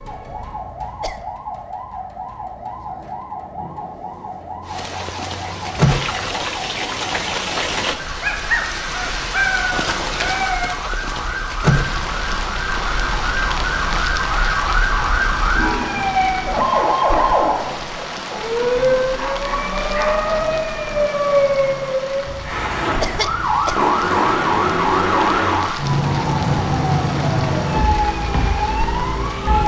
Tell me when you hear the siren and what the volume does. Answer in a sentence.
The siren can be heard from 0.0 to 29.6 s, getting louder.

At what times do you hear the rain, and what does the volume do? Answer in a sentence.
You can hear the rain from 4.7 to 29.6 s, getting quieter.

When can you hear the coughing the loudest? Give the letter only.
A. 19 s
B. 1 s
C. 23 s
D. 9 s
C.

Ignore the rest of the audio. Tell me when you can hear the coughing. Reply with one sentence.
You can hear the coughing from 0.2 to 1.2 s and from 22.2 to 23.8 s.